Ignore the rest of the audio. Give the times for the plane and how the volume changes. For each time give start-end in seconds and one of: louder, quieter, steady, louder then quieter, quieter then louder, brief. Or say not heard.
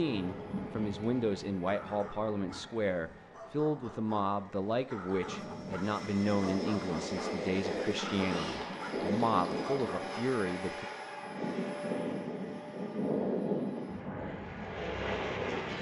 0.0-15.7 louder.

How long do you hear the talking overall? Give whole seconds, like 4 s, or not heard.
11 s.